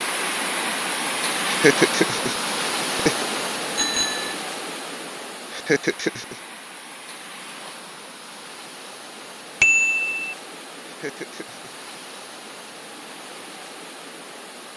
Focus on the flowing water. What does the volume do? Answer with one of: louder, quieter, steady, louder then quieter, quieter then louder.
quieter.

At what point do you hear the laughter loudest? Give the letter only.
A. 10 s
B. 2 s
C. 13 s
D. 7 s
B.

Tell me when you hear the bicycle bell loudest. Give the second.
10 s.